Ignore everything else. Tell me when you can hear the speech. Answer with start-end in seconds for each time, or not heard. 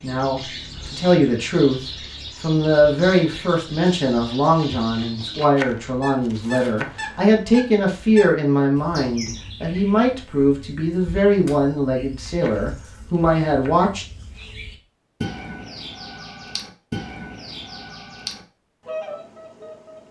0.0-1.8, 2.4-14.1.